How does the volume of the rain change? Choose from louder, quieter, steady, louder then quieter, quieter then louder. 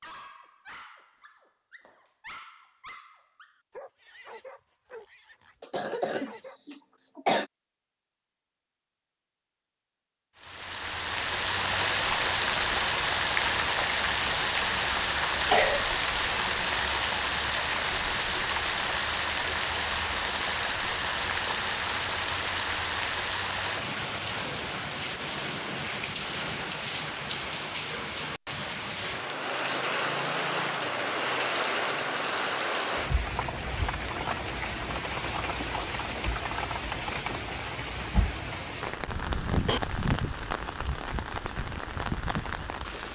quieter.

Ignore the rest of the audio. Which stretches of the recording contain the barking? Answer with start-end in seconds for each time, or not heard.
0.0-6.6.